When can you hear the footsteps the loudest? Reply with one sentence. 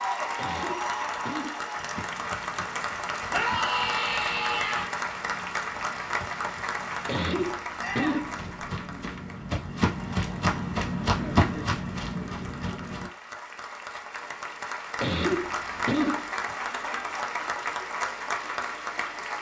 The volume of the footsteps peaks at 11 seconds.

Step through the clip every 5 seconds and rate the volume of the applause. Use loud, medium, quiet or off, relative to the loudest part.
loud, loud, medium, loud.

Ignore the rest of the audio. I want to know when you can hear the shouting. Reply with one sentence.
The shouting can be heard from 3.3 to 4.9 s, from 7.8 to 8.3 s and from 16.3 to 17.1 s.